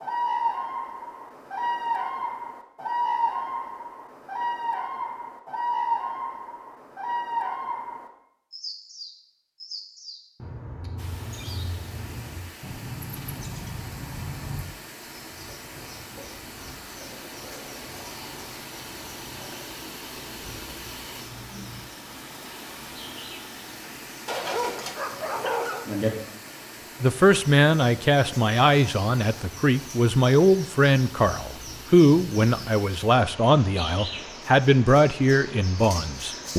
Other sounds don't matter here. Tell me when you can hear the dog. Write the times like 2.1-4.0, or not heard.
24.2-25.9.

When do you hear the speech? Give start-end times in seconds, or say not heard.
27.0-36.5.